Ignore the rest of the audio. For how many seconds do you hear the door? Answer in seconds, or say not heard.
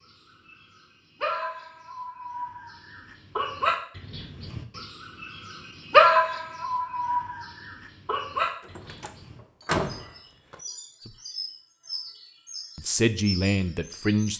2 s.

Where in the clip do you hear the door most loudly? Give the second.
10 s.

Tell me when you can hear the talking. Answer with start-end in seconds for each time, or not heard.
12.8-14.3.